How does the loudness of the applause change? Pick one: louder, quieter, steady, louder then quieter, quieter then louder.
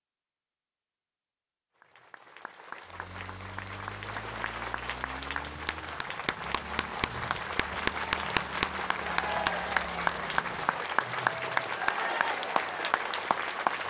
louder.